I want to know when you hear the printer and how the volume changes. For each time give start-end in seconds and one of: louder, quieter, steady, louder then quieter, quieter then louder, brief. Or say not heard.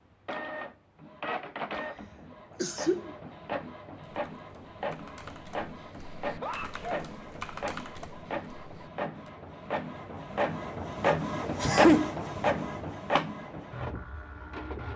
0.2-14.9 louder.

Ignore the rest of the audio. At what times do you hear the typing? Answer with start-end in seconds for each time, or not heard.
4.0-9.3.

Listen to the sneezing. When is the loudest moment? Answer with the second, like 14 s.
12 s.